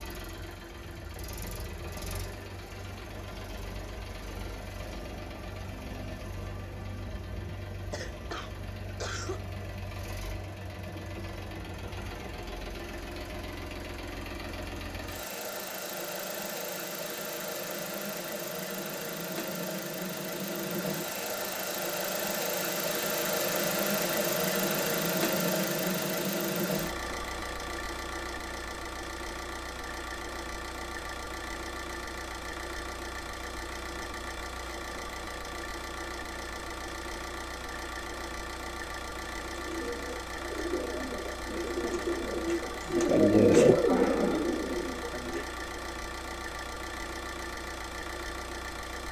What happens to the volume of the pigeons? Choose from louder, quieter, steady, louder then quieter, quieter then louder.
louder then quieter.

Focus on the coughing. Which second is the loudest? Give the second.
9 s.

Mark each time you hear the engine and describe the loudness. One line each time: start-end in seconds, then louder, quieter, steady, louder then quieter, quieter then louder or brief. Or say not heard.
0.0-49.0 louder then quieter.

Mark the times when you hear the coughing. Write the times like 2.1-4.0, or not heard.
7.9-9.4.